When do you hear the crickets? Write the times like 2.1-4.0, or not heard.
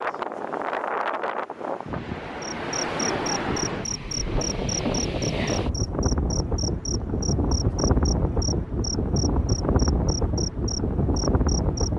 2.4-11.9.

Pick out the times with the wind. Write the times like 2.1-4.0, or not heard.
0.0-11.9.